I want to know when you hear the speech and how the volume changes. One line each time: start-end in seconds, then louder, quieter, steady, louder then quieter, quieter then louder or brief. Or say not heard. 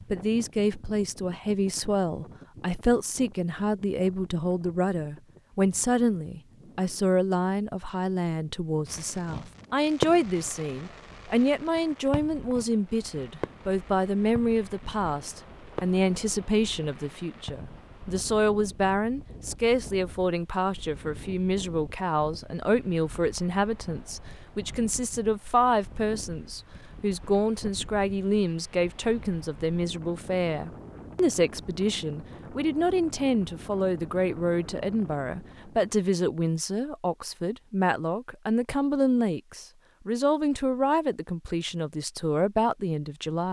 0.1-43.4 steady.